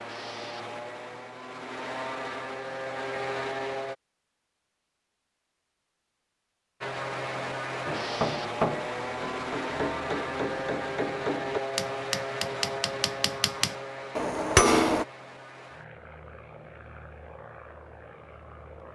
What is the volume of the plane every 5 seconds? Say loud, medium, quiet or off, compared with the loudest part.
loud, loud, loud, quiet.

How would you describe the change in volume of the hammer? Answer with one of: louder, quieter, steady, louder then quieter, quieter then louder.
louder.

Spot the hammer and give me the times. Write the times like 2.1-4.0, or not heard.
7.8-15.1.